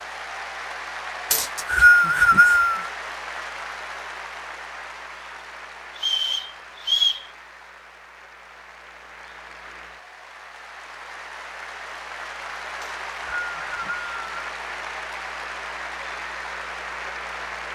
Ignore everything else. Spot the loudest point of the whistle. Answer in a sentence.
The volume of the whistle peaks at 2 seconds.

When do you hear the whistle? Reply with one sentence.
You can hear the whistle from 1.3 to 2.9 s, from 6.0 to 7.2 s and from 12.8 to 14.5 s.